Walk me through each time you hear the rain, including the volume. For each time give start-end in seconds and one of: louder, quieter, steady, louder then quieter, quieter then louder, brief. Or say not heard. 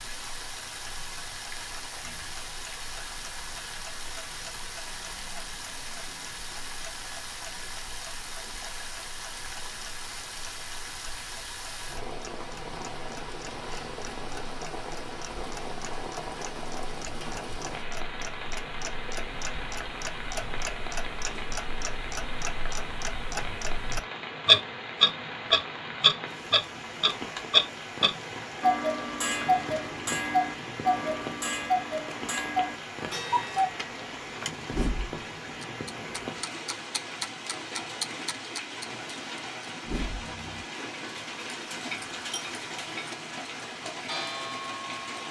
0.0-45.2 steady.